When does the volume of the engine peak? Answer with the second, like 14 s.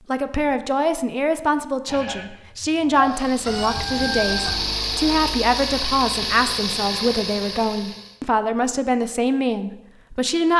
5 s.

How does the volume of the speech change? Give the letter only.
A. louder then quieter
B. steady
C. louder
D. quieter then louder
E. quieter
B.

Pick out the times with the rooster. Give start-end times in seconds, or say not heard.
3.5-4.8.